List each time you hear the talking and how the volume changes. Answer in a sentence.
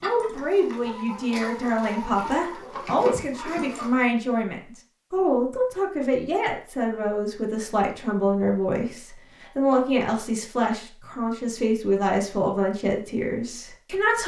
You can hear the talking from 0.0 to 14.2 s, at a steady volume.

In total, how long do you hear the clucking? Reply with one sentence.
You can hear the clucking for 4 seconds altogether.